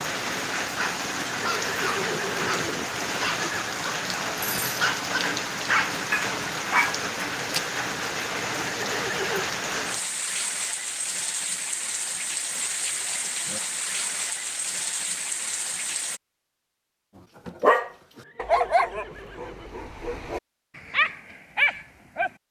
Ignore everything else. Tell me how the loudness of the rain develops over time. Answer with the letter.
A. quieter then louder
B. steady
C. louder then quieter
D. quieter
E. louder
B.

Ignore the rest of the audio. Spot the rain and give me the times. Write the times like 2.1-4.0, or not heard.
0.0-16.2.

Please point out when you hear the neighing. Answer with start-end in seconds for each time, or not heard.
1.2-3.8, 8.6-9.5, 18.1-19.8.